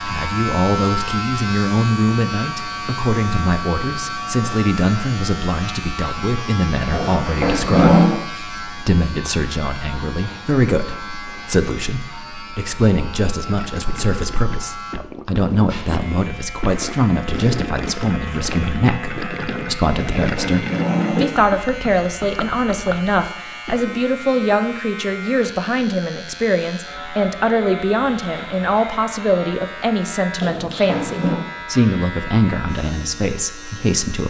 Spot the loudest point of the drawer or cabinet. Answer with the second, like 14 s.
8 s.